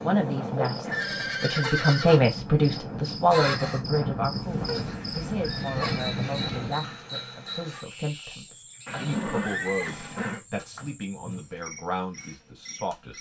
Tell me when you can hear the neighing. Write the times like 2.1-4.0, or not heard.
0.8-2.2, 4.4-6.8, 8.8-10.4.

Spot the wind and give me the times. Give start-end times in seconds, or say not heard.
0.0-7.0.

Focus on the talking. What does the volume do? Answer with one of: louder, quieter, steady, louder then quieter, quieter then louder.
quieter.